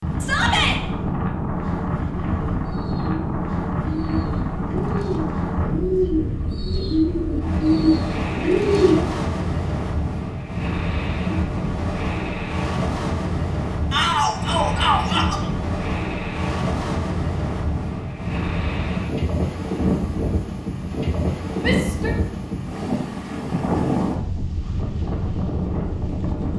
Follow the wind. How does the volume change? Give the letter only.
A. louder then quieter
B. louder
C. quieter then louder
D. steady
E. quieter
D.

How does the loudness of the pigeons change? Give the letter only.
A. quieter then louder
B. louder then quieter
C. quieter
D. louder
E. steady
D.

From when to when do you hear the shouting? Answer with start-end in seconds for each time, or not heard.
0.2-0.8, 13.9-15.4, 21.6-22.1.